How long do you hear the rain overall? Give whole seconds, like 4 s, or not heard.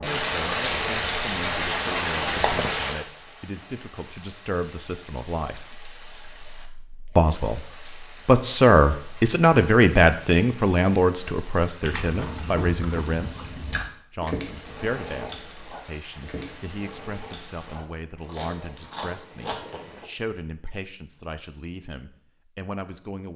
18 s.